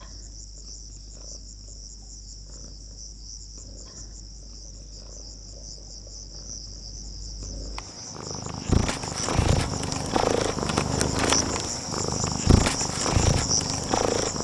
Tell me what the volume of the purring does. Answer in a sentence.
The loudness of the purring goes up.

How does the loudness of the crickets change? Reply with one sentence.
The loudness of the crickets goes up.